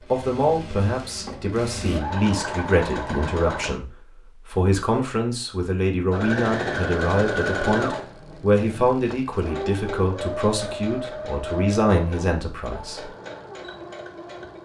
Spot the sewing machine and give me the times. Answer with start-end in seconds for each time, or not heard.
0.0-3.8, 6.1-14.5.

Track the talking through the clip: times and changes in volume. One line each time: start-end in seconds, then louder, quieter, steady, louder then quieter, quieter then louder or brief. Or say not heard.
0.1-13.1 steady.